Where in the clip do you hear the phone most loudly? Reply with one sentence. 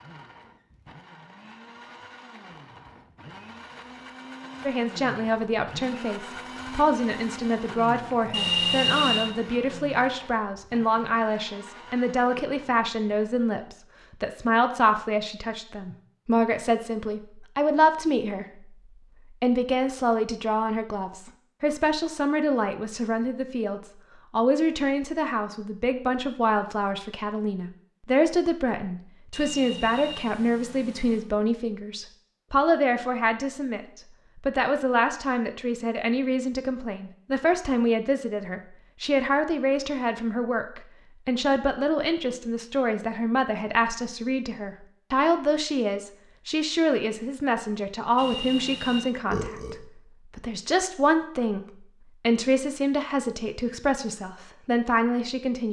The loudest moment of the phone is at 9 seconds.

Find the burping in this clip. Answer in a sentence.
The burping can be heard from 49.3 to 49.8 s.